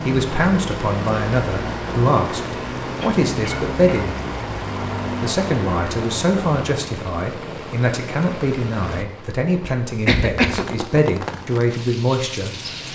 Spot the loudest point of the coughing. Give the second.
10 s.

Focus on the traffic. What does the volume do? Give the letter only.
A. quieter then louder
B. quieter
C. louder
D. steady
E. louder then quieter
D.